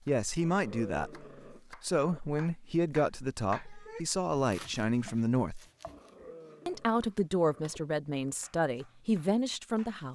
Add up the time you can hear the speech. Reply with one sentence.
The speech can be heard for 9 seconds in total.